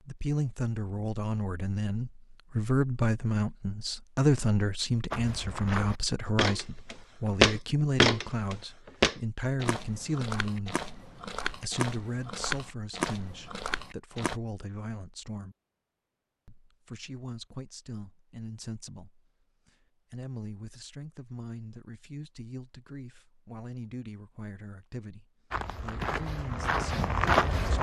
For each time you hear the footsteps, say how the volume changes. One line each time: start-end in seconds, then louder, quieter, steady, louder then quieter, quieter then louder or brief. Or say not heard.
5.1-14.4 louder then quieter
25.5-27.7 brief.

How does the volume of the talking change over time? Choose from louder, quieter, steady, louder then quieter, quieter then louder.
quieter.